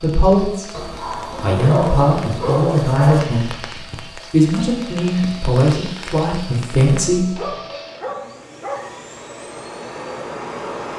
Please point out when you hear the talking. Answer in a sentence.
The talking can be heard from 0.0 to 0.7 s and from 1.4 to 7.5 s.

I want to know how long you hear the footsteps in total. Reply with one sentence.
You can't hear the footsteps here.